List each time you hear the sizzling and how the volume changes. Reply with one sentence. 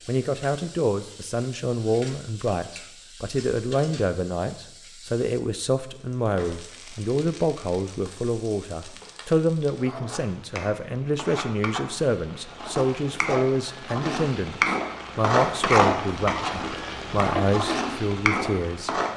The sizzling can be heard from 0.0 to 19.1 s, getting louder.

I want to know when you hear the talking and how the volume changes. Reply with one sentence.
You can hear the talking from 0.1 to 19.0 s, at a steady volume.